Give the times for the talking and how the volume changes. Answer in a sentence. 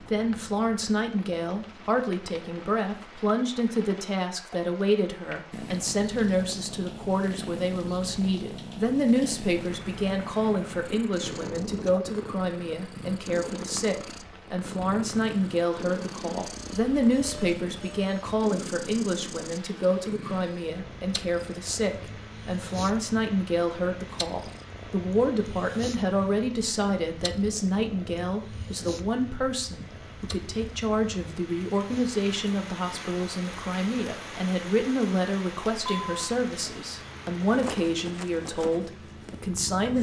You can hear the talking from 0.0 to 39.9 s, at a steady volume.